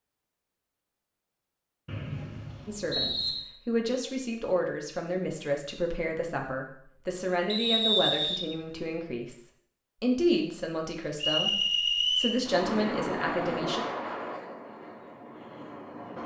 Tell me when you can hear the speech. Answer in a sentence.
The speech can be heard from 2.6 to 13.8 s.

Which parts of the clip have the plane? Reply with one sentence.
The plane can be heard from 12.4 to 16.2 s.